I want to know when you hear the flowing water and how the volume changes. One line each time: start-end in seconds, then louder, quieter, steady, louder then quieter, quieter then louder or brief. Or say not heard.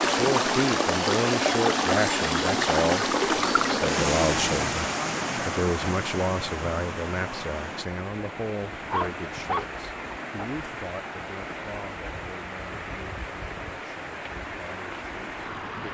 0.0-15.8 quieter.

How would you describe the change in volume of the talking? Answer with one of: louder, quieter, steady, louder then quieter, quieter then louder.
quieter.